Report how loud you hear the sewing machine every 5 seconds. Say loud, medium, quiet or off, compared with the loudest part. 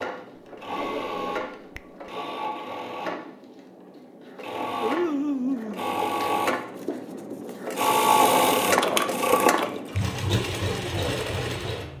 medium, loud, medium.